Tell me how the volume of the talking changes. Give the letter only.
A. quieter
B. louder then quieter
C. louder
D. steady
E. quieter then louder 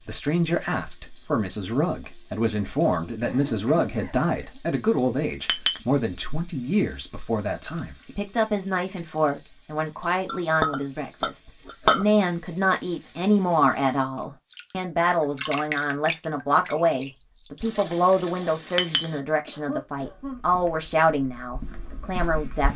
D.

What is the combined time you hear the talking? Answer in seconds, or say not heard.
23 s.